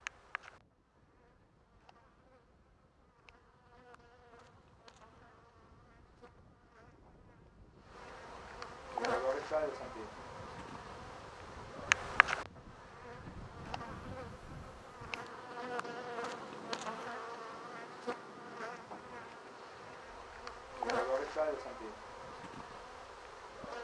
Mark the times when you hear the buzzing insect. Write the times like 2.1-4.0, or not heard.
0.0-23.7.